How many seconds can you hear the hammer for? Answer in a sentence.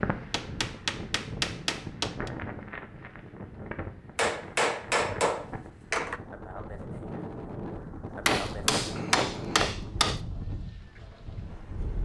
The hammer can be heard for 6 seconds in total.